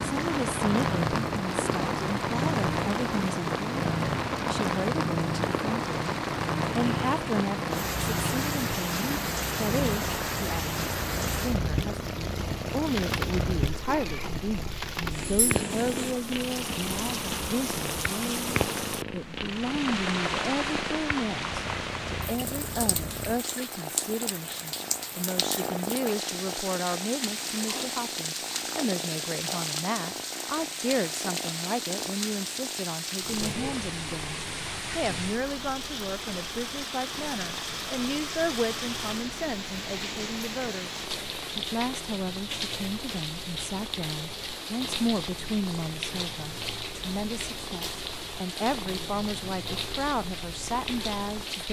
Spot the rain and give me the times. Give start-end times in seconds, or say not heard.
0.0-51.6.